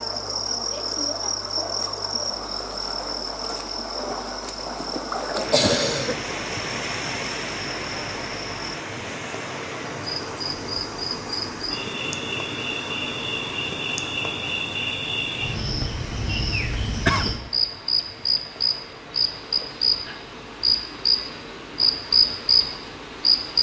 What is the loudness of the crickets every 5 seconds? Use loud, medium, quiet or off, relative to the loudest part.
medium, quiet, medium, loud, loud.